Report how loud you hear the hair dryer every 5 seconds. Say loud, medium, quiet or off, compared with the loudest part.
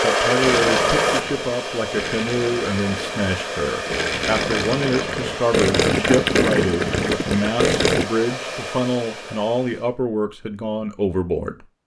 loud, medium, off.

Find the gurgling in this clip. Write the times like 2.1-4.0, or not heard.
0.4-8.1.